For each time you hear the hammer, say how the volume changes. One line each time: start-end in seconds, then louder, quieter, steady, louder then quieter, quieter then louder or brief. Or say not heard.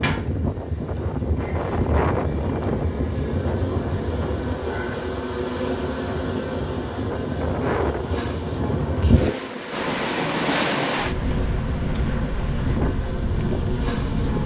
not heard.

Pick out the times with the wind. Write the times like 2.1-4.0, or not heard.
0.0-14.4.